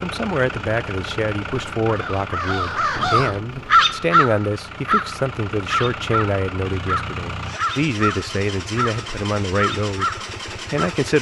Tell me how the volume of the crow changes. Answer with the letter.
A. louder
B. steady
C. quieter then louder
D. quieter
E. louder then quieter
D.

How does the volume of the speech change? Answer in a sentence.
The volume of the speech stays about the same.